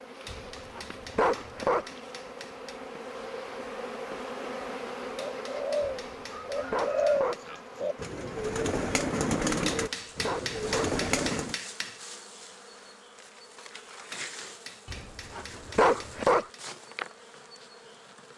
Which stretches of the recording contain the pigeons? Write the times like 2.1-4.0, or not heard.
5.3-11.6.